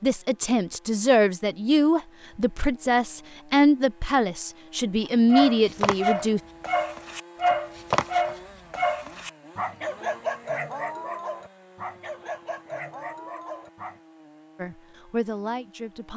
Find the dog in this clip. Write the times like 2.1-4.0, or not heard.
5.3-14.0.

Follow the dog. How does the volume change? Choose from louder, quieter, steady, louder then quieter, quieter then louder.
quieter.